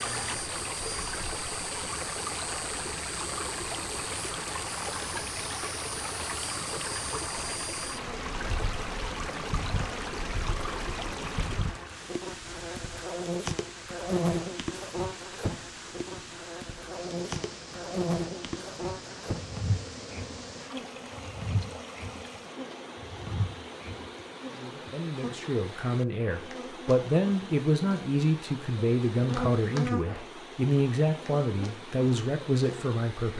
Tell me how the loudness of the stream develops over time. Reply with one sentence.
The volume of the stream goes down.